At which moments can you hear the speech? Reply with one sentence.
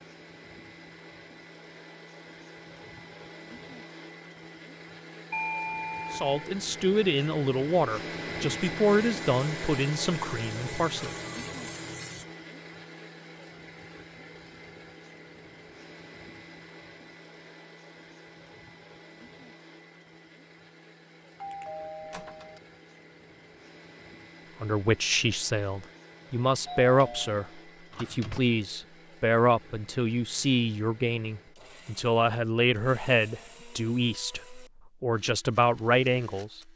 The speech can be heard from 6.1 to 11.2 s and from 24.6 to 36.6 s.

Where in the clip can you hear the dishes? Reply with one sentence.
The dishes can't be heard in this clip.